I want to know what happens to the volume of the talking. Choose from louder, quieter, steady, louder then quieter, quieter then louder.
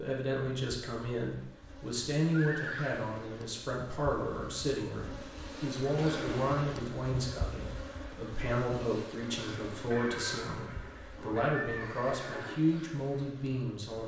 steady.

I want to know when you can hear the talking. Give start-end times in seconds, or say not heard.
0.0-14.0.